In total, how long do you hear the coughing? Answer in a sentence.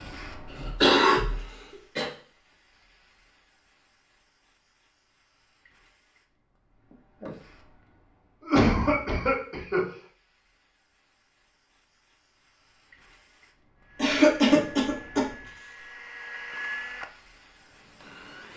The coughing can be heard for 4 seconds in total.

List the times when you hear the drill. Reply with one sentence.
You can hear the drill from 13.8 to 18.5 s.